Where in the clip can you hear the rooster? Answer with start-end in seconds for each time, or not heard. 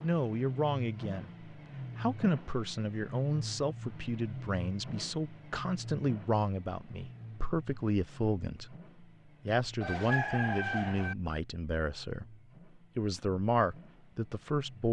9.8-11.2.